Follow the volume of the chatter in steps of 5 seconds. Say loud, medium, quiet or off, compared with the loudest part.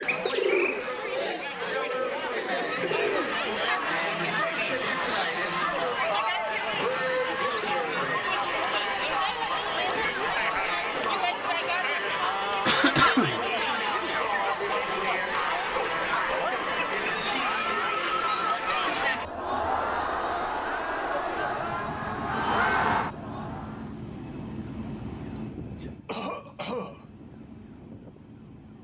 loud, loud, loud, loud, loud, off.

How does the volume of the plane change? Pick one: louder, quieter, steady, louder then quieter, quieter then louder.
quieter.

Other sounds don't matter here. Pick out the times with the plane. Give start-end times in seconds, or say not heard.
21.2-28.8.